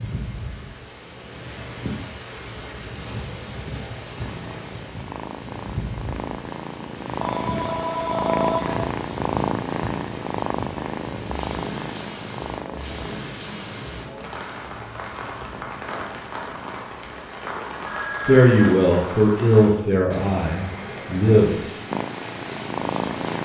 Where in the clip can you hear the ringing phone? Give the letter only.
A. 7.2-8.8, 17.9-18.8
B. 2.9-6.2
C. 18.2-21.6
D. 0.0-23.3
A.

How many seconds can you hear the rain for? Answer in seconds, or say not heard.
23 s.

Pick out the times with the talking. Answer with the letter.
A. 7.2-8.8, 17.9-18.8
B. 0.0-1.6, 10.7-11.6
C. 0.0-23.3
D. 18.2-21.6
D.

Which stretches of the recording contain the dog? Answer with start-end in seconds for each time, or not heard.
not heard.